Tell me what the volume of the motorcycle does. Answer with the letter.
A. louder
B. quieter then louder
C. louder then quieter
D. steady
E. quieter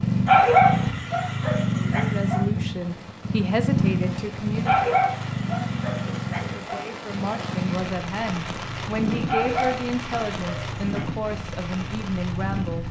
E.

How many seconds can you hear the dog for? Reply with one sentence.
You can hear the dog for 6 seconds altogether.